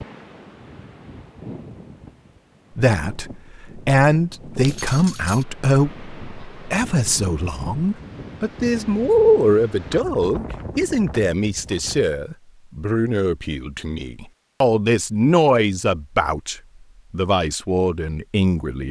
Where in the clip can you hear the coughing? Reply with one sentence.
The coughing can't be heard in this clip.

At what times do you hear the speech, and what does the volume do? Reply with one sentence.
You can hear the speech from 2.8 to 18.8 s, at a steady volume.